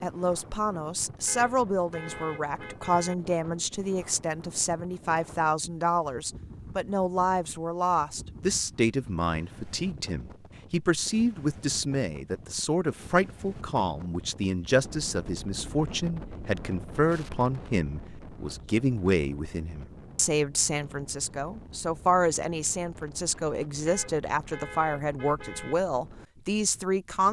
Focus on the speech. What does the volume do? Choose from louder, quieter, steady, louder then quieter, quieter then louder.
steady.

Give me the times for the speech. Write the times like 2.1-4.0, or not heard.
0.0-27.2.